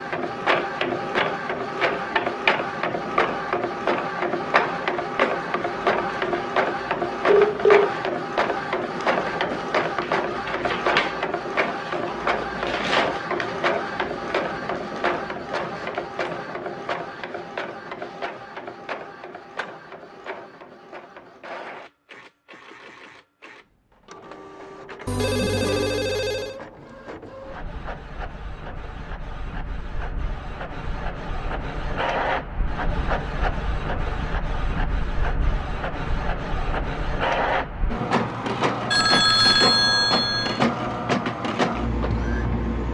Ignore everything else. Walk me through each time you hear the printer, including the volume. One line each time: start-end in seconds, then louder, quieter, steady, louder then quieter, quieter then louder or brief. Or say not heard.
0.0-42.8 quieter then louder.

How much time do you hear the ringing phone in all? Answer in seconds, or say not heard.
4 s.